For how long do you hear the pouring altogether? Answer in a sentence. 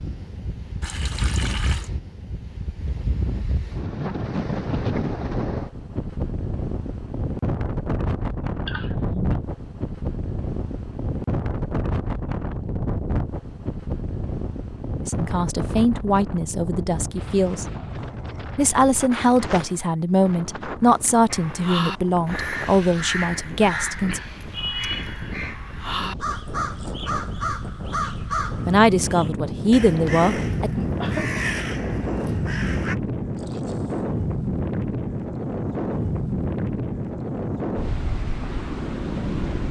You can hear the pouring for 2 seconds altogether.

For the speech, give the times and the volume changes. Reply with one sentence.
You can hear the speech briefly from 15.0 to 17.6 s; from 18.6 to 24.2 s, at a steady volume; and briefly from 28.6 to 30.7 s.